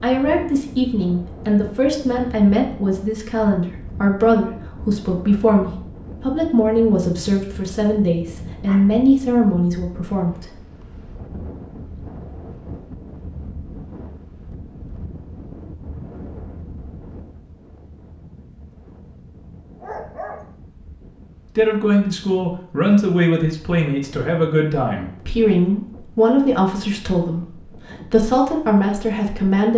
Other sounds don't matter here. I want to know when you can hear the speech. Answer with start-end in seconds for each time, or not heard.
0.0-10.6, 21.6-29.7.